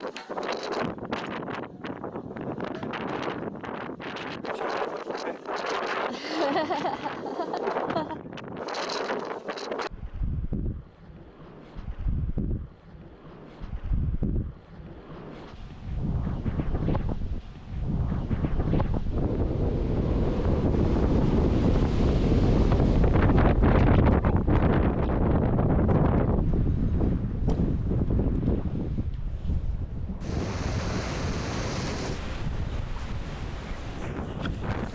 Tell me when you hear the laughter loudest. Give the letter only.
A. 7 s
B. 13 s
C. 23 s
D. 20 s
A.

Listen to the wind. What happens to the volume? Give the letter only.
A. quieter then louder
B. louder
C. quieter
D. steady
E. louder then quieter
E.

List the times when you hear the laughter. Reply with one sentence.
The laughter can be heard from 6.0 to 8.2 s.